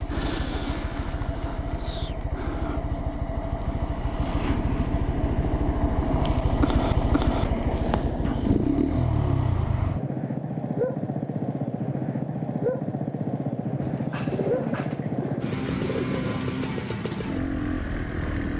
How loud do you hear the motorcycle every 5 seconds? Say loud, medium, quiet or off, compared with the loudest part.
medium, loud, loud, loud.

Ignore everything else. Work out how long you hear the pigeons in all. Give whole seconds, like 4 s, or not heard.
3 s.